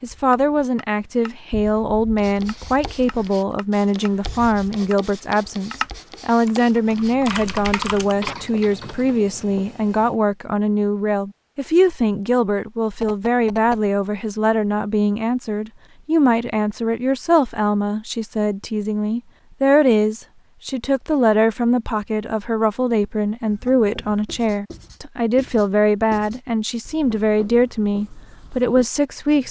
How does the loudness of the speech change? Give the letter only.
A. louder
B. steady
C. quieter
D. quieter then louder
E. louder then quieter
B.